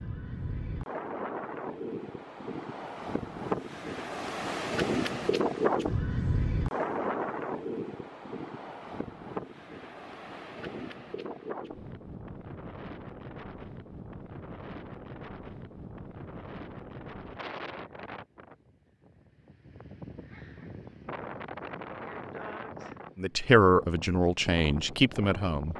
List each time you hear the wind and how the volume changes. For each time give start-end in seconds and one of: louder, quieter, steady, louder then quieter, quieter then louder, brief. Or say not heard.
0.0-25.7 quieter.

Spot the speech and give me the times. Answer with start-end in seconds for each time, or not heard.
23.1-25.7.